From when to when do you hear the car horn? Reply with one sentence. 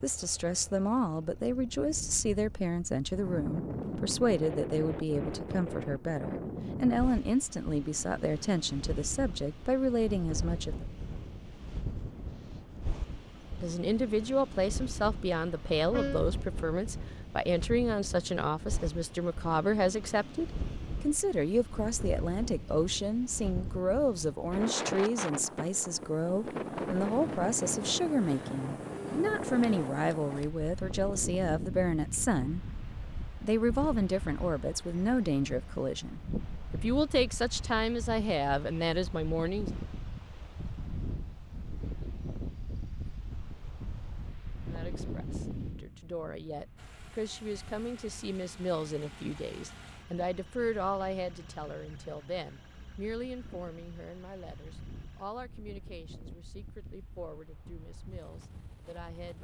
The car horn can be heard from 15.3 to 16.2 s.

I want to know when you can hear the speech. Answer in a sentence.
The speech can be heard from 0.0 to 10.8 s, from 13.6 to 32.6 s, from 33.4 to 39.7 s and from 44.6 to 59.4 s.